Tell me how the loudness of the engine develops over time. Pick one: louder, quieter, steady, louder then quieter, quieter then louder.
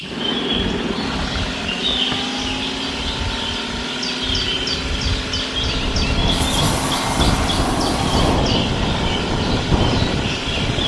steady.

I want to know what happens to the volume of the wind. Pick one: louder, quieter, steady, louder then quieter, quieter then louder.
louder.